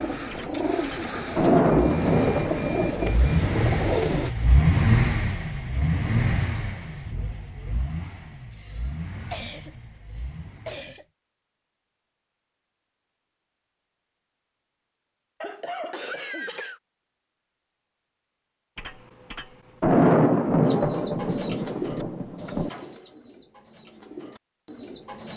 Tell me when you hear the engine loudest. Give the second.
5 s.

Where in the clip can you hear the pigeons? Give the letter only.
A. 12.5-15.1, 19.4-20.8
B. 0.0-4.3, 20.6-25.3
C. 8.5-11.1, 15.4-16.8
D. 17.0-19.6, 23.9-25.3
B.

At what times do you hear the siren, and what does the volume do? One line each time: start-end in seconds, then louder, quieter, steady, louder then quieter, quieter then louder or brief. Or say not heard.
not heard.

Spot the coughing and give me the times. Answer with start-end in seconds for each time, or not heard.
8.5-11.1, 15.4-16.8.